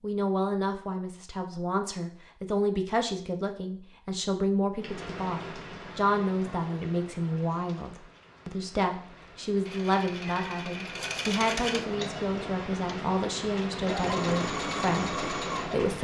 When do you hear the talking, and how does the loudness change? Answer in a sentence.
You can hear the talking from 0.0 to 15.9 s, at a steady volume.